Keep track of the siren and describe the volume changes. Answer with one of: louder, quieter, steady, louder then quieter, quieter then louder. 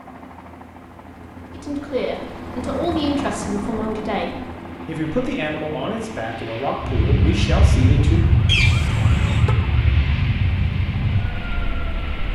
quieter.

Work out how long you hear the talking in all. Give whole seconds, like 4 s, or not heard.
7 s.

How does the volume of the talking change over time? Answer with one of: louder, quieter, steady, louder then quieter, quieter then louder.
steady.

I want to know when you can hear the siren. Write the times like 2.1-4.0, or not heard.
6.8-12.2.